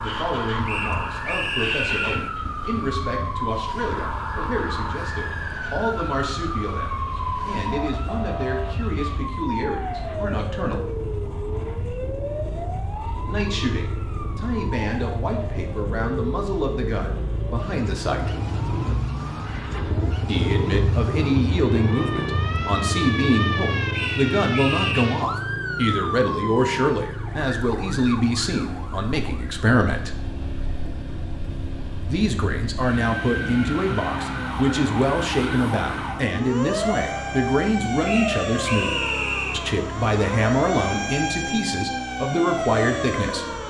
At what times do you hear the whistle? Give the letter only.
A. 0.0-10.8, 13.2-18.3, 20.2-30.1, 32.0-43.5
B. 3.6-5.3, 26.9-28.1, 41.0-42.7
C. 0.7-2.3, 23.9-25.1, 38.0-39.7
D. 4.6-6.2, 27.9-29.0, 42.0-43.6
C.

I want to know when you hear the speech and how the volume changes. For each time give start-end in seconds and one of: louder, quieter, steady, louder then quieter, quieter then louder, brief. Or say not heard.
0.0-10.8 steady
13.2-18.3 steady
20.2-30.1 steady
32.0-43.5 steady.